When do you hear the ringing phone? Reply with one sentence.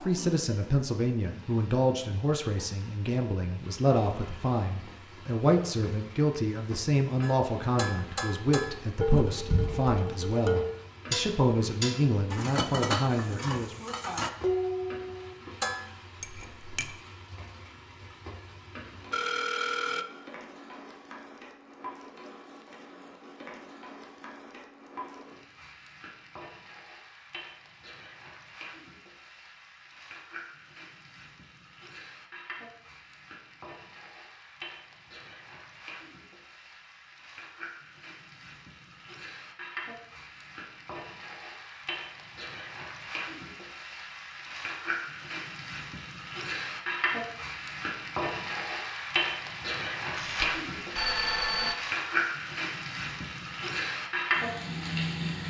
The ringing phone can be heard from 9.1 to 9.8 s, from 19.1 to 20.1 s and from 50.1 to 51.8 s.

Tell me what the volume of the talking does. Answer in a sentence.
The volume of the talking stays about the same.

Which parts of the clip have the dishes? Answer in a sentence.
The dishes can be heard from 7.2 to 16.9 s.